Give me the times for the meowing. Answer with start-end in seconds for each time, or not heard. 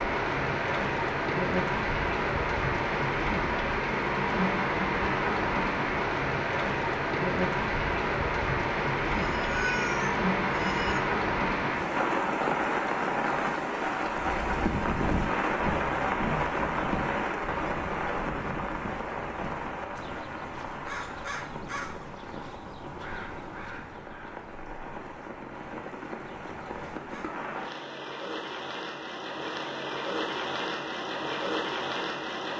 9.1-11.0.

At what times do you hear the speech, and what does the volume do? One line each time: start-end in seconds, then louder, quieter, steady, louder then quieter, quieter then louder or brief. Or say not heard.
not heard.